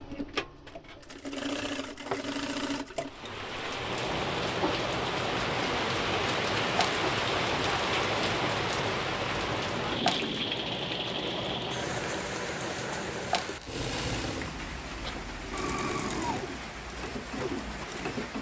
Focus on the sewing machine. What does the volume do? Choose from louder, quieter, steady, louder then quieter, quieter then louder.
steady.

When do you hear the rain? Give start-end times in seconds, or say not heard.
3.0-18.3.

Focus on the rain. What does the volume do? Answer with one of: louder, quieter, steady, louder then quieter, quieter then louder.
quieter.